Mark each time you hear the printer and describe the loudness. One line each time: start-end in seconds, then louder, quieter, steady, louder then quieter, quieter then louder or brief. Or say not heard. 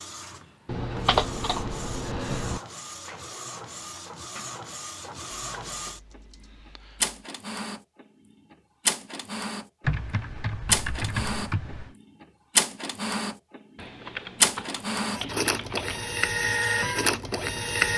0.0-17.9 louder.